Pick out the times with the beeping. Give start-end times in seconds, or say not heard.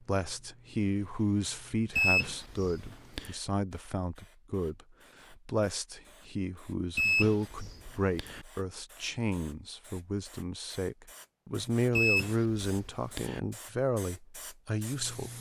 1.9-3.4, 7.0-8.4, 11.9-13.4.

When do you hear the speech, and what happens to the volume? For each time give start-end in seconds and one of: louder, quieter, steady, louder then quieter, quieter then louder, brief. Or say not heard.
0.0-15.3 steady.